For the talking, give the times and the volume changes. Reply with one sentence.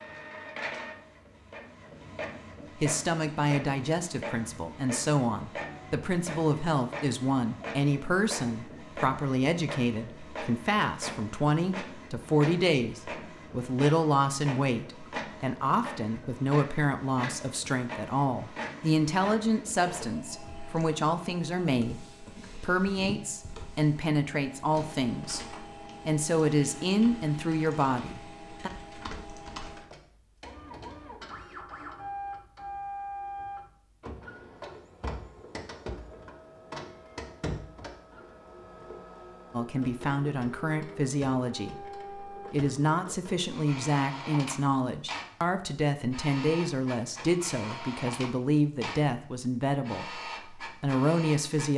You can hear the talking from 2.8 to 28.7 s, at a steady volume; and from 39.5 to 51.7 s, at a steady volume.